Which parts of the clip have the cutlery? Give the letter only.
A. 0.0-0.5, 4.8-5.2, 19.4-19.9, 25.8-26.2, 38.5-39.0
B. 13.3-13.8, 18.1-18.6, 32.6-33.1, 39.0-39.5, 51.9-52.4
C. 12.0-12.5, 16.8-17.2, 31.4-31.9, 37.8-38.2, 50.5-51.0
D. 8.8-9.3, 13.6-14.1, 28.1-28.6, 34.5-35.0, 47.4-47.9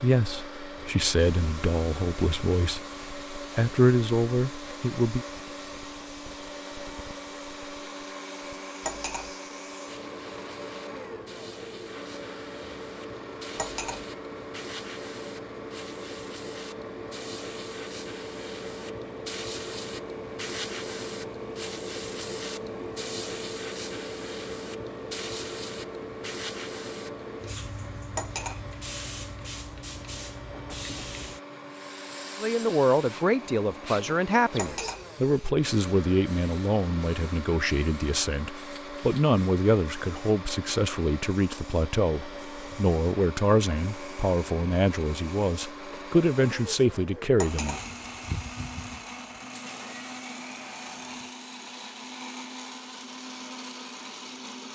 D.